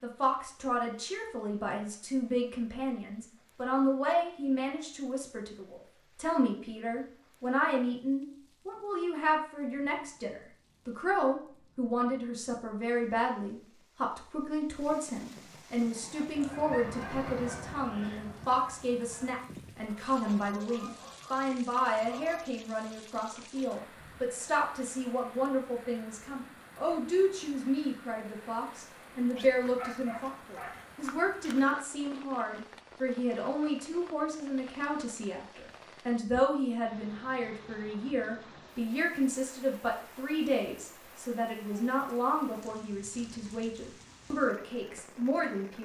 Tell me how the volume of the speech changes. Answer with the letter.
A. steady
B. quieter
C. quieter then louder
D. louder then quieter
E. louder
A.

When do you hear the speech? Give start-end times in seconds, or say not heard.
0.0-45.7.